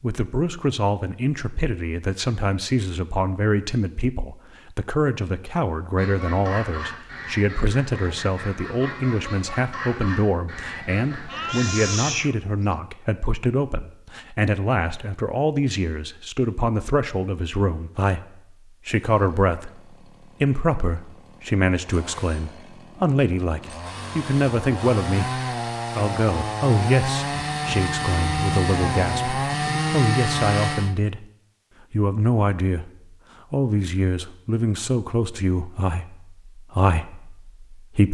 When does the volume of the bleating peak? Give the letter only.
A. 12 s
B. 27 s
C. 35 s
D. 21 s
A.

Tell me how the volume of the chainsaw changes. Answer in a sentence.
The volume of the chainsaw goes up.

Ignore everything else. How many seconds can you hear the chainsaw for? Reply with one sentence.
You can hear the chainsaw for 12 seconds altogether.